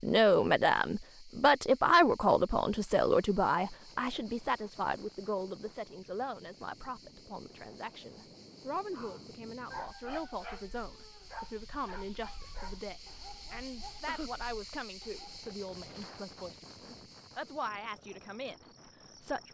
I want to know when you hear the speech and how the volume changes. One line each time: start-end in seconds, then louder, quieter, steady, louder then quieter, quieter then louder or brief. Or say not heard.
0.0-19.4 quieter.